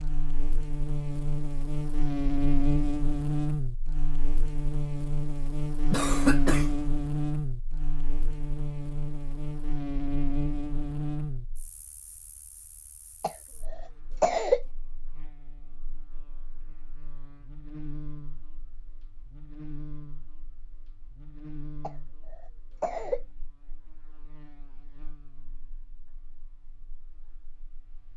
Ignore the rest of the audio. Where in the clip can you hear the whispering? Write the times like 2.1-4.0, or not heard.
not heard.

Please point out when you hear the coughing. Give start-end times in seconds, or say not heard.
5.9-6.8, 13.2-14.6, 21.8-23.2.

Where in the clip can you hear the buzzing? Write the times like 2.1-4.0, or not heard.
0.0-28.1.